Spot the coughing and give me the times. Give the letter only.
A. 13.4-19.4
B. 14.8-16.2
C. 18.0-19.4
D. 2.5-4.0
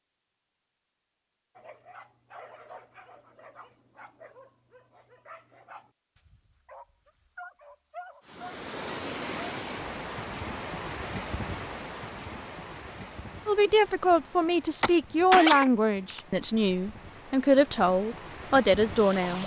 B.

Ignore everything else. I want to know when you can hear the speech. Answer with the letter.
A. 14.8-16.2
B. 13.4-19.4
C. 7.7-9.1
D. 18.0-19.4
B.